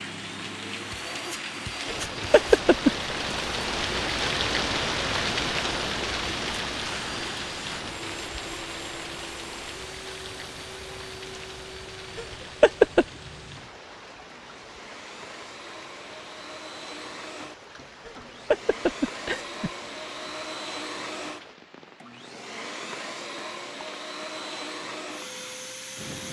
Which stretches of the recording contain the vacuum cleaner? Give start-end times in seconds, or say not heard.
0.0-26.2.